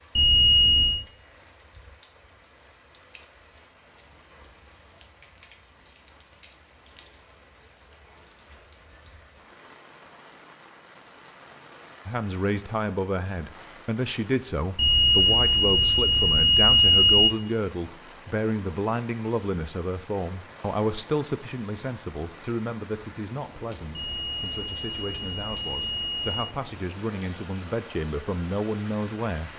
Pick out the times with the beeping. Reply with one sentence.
The beeping can be heard from 0.1 to 1.1 s, from 14.8 to 17.3 s and from 23.9 to 26.4 s.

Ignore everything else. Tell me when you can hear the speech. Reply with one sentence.
The speech can be heard from 12.1 to 29.5 s.